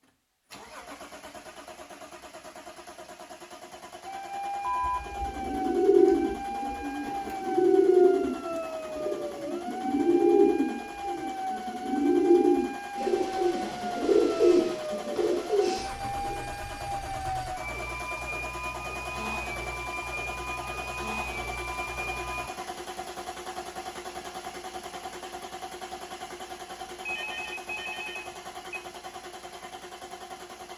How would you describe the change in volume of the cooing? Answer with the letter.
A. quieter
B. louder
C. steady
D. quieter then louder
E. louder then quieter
C.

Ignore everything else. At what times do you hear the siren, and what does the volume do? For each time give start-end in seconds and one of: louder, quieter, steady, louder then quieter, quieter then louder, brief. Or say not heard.
4.0-22.5 steady.